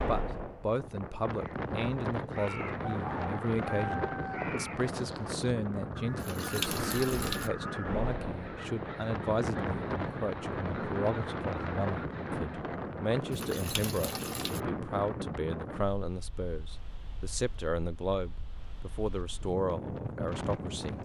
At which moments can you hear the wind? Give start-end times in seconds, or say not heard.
0.0-20.9.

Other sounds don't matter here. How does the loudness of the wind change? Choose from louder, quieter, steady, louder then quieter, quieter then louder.
quieter.